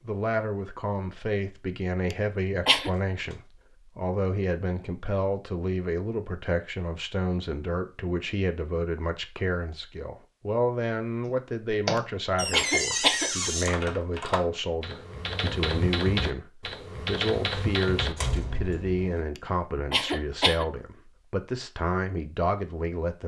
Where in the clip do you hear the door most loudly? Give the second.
13 s.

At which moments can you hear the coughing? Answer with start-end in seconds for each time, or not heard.
2.1-2.9, 11.9-13.3, 19.4-20.6.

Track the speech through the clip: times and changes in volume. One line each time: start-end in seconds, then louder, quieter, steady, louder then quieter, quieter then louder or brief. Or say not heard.
0.0-23.2 steady.